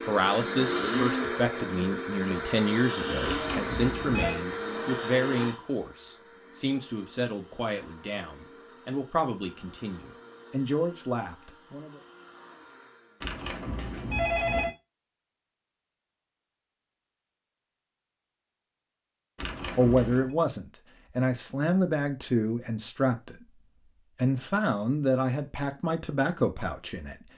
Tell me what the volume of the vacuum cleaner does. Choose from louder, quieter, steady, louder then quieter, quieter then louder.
quieter.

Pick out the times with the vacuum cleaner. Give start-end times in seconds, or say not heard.
0.0-13.3.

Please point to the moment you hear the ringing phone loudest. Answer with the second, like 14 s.
14 s.